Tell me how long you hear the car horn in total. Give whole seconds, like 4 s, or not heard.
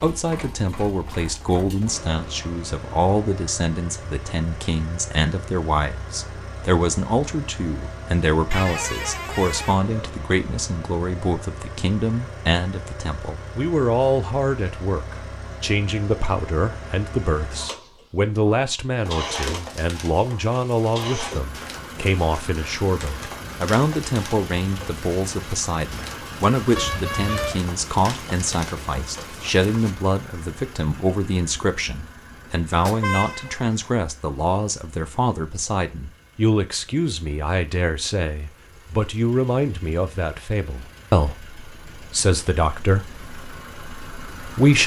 3 s.